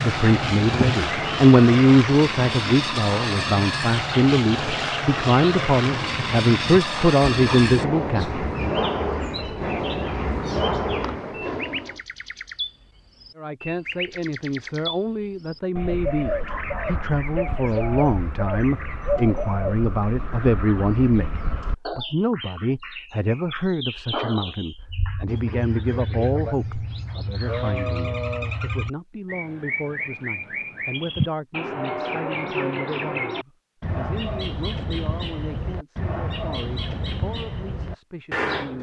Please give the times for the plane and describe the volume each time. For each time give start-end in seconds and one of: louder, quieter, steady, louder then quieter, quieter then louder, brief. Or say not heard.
0.0-12.0 steady.